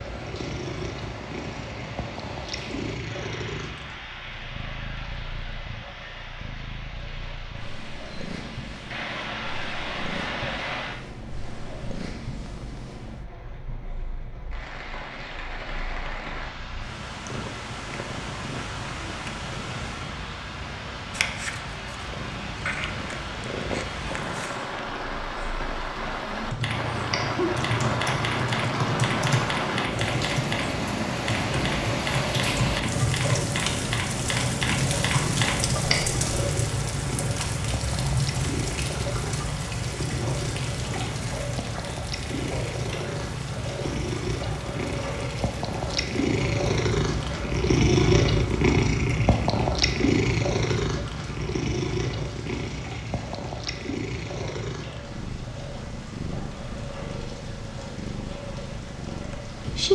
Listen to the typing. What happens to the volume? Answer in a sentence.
The loudness of the typing stays about the same.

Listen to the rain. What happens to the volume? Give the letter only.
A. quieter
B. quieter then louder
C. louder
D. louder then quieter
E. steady
D.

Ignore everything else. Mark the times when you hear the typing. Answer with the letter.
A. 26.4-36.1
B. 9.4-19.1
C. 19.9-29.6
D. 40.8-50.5
A.